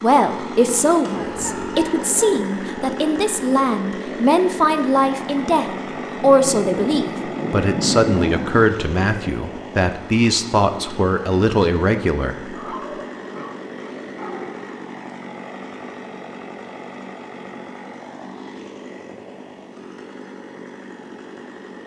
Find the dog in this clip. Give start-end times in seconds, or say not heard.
1.1-2.5, 12.6-14.8.